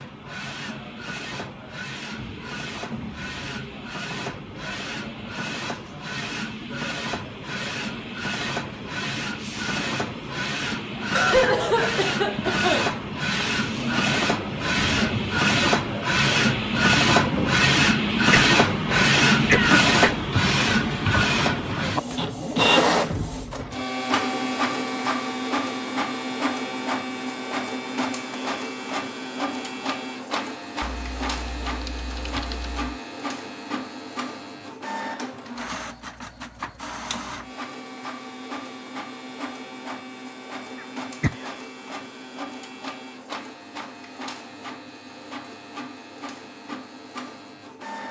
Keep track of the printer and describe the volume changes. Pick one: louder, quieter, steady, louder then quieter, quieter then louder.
louder then quieter.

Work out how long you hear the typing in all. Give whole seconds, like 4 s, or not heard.
2 s.